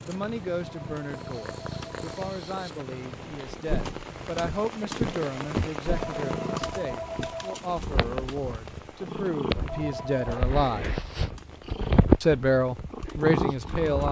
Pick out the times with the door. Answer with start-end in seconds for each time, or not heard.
not heard.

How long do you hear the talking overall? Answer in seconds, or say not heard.
13 s.